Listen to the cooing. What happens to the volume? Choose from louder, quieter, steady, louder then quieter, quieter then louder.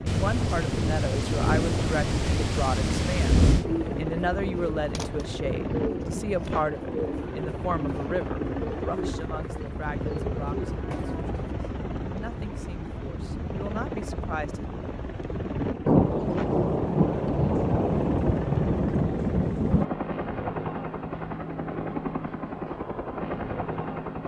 steady.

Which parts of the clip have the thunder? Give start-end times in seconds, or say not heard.
0.1-3.6, 15.8-19.9.